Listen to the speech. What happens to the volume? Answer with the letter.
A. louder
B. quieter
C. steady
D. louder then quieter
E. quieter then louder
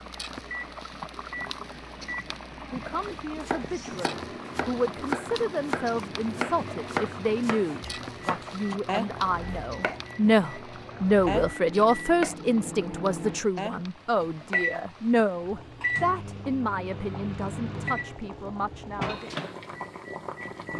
D.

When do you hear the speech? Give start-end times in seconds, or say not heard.
2.7-19.4.